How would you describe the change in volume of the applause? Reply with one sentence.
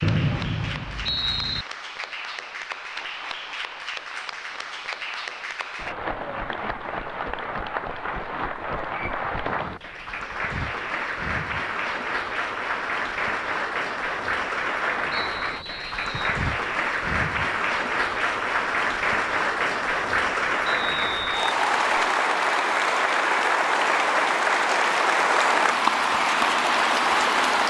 The volume of the applause goes up.